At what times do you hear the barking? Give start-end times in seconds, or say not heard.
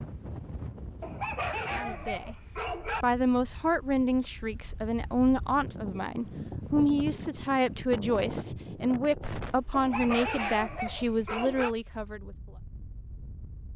1.0-3.0, 9.7-11.8.